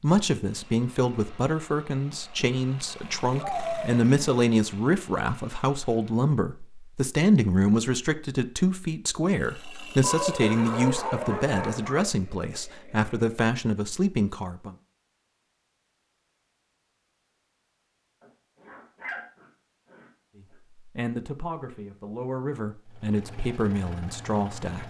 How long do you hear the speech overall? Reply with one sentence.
You can hear the speech for 19 seconds altogether.